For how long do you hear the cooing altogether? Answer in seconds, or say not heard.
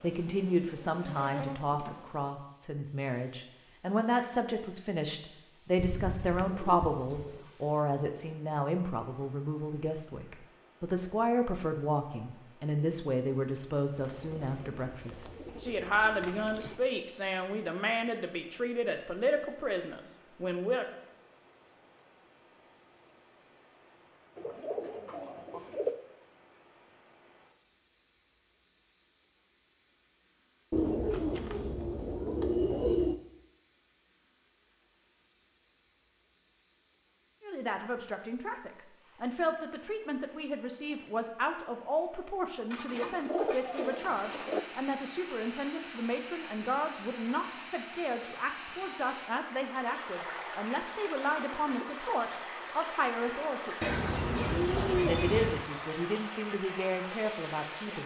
12 s.